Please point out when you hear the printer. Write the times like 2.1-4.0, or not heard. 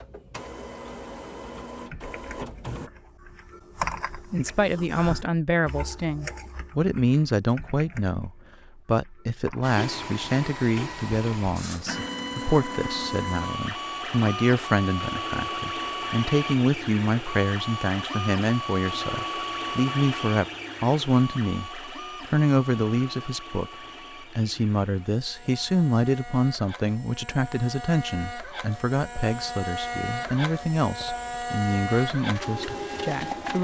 0.0-2.9, 9.6-33.5.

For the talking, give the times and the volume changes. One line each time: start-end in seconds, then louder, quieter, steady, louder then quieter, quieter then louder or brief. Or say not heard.
4.3-33.5 steady.